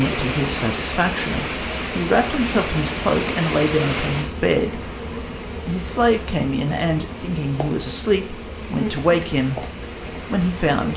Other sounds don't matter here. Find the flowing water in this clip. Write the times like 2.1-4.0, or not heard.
0.0-10.9.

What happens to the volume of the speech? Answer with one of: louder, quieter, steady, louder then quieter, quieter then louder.
steady.